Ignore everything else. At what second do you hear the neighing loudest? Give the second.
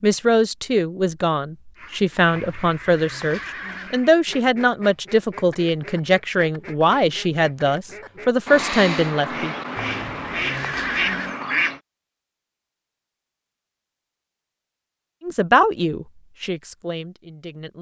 11 s.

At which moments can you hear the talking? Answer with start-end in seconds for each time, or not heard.
0.0-9.6, 15.2-17.7.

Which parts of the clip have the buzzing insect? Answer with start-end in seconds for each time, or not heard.
not heard.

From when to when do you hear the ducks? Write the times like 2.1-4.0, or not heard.
1.8-11.8.